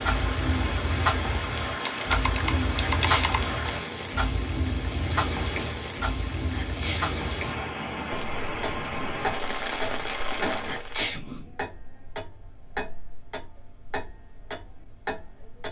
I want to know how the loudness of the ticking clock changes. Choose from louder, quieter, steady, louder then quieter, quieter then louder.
quieter.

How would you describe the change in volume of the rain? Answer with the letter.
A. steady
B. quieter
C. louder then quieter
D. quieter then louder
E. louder
A.